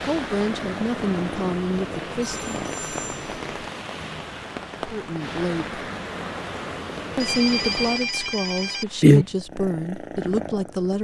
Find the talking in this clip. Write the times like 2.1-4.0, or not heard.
0.0-2.6, 4.8-5.8, 7.2-10.9.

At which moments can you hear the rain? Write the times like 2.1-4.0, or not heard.
0.0-9.4.